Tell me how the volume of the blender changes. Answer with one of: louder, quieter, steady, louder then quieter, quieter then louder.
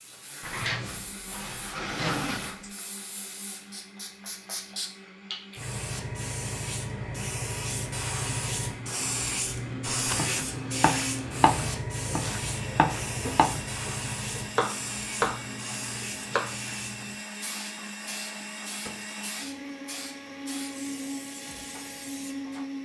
louder.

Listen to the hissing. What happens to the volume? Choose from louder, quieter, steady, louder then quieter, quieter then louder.
louder then quieter.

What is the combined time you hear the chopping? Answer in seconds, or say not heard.
7 s.